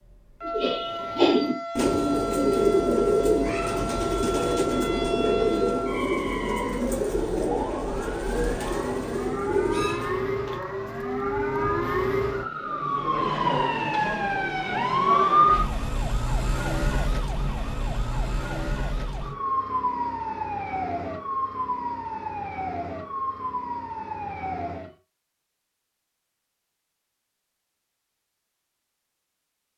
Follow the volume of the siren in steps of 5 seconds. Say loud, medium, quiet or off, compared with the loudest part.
medium, medium, loud, loud, medium, off.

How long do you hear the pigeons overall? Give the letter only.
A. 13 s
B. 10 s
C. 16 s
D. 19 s
B.